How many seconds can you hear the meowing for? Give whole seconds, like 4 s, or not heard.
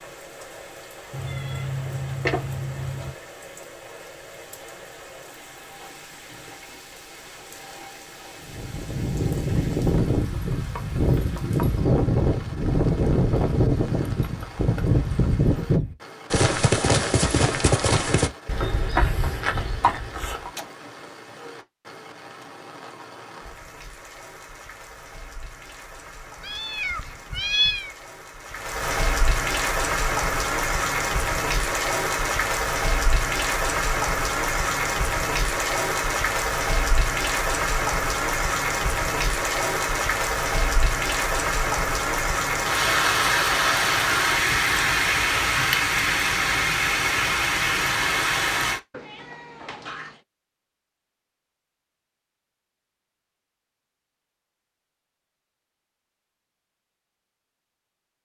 5 s.